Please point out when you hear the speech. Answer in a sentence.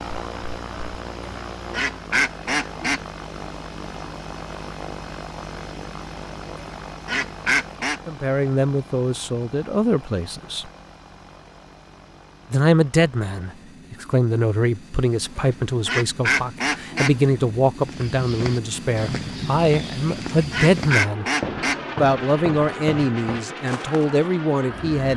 You can hear the speech from 8.1 to 10.7 s, from 12.5 to 21.2 s and from 21.9 to 25.1 s.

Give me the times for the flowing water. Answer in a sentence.
You can't hear the flowing water here.